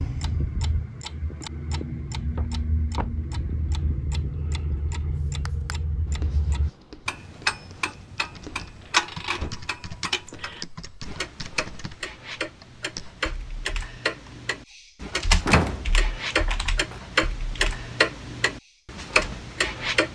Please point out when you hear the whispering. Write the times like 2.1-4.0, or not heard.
not heard.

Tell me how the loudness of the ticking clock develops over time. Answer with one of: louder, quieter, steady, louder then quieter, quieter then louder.
louder.